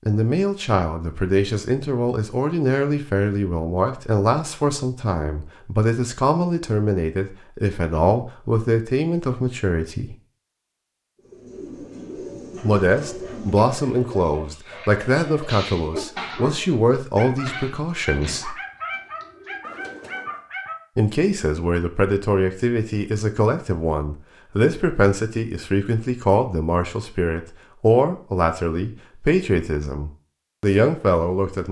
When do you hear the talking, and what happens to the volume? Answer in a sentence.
The talking can be heard from 0.1 to 10.2 s, at a steady volume; from 12.6 to 18.6 s, at a steady volume; and from 20.9 to 31.6 s, at a steady volume.